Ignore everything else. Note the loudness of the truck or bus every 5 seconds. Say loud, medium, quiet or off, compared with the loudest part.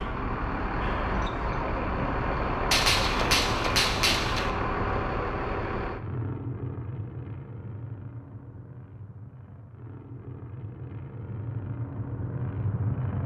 loud, medium, medium.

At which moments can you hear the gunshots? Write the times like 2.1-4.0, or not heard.
2.7-4.5.